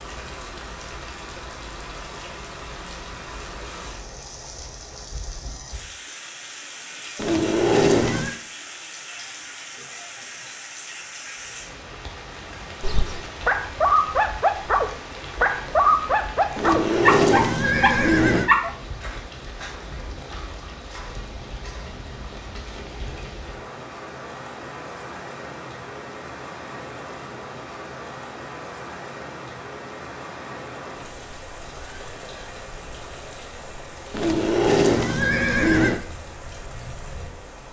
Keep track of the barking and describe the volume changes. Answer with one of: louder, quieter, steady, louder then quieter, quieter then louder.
steady.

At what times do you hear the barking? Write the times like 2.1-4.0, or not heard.
12.8-18.7.